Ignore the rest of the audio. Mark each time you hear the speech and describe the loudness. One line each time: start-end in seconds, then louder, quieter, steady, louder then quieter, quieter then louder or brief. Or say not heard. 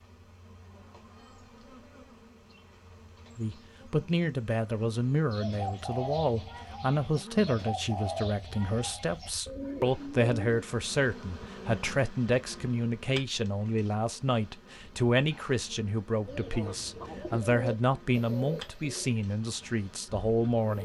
3.4-20.8 steady.